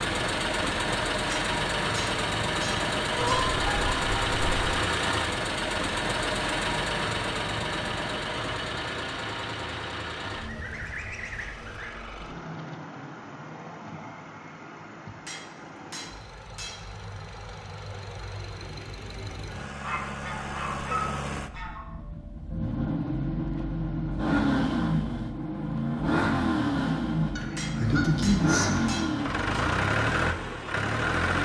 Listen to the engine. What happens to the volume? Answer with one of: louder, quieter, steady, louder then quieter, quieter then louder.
quieter then louder.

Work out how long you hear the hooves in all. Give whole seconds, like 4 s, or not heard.
not heard.